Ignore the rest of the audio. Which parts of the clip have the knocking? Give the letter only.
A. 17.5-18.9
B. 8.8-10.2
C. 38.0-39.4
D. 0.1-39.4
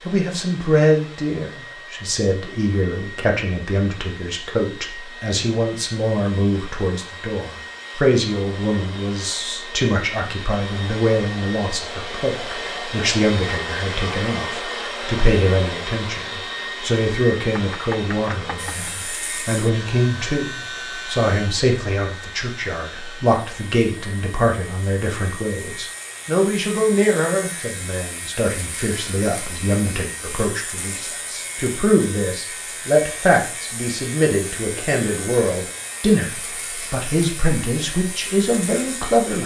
A.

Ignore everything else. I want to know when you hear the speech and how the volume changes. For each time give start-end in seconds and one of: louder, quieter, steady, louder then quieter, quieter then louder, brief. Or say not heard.
0.1-39.4 steady.